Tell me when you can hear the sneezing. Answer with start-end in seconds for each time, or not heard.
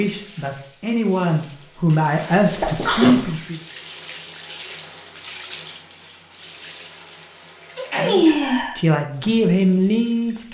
2.1-3.4, 7.8-8.8.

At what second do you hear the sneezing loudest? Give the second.
8 s.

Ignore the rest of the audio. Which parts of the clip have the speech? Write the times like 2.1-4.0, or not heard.
0.0-3.6, 8.0-10.4.